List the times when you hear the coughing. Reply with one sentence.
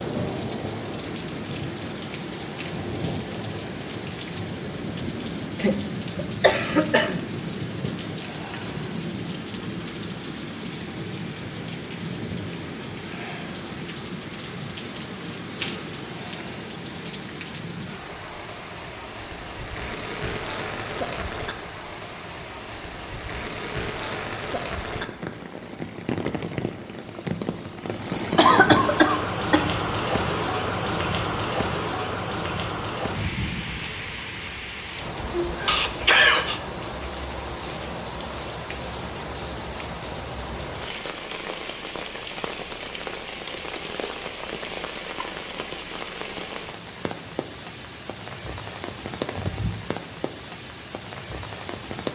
You can hear the coughing from 5.5 to 7.2 s, from 28.4 to 29.7 s and from 35.6 to 36.6 s.